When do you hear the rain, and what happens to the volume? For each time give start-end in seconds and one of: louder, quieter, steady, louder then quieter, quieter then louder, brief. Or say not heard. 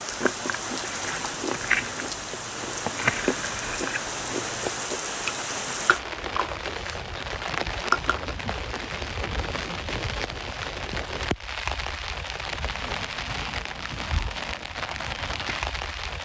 0.0-16.2 steady.